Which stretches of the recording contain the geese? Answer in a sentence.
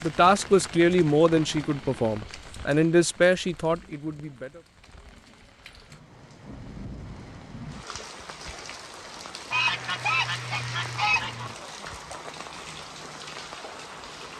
The geese can be heard from 9.5 to 11.6 s.